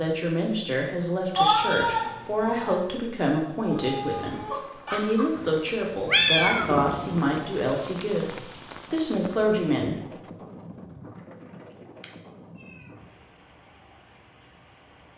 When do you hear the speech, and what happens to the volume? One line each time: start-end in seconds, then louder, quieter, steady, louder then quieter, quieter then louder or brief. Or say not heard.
0.0-10.2 steady.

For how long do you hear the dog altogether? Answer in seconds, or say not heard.
2 s.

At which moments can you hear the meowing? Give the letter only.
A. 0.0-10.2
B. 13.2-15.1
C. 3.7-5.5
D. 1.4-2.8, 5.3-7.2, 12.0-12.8
D.